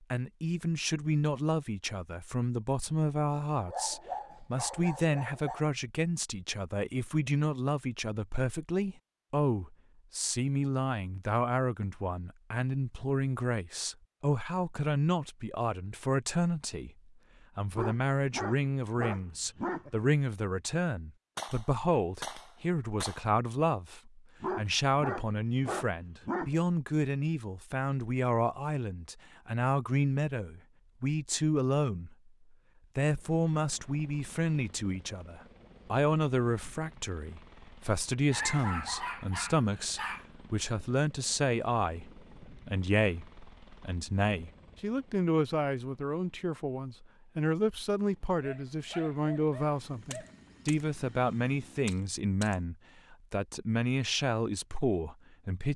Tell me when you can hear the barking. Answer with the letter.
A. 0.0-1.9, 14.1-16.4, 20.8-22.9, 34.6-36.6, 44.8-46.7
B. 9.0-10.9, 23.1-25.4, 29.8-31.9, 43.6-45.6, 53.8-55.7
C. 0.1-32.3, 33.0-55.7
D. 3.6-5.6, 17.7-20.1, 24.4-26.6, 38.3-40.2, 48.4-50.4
D.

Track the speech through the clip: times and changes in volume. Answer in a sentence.
The speech can be heard from 0.1 to 32.3 s, at a steady volume; and from 33.0 to 55.7 s, at a steady volume.